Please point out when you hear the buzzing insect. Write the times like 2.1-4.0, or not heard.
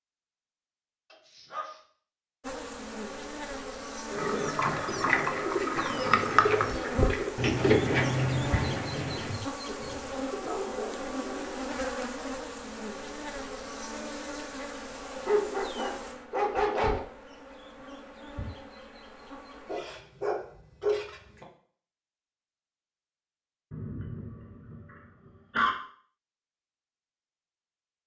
2.4-21.4.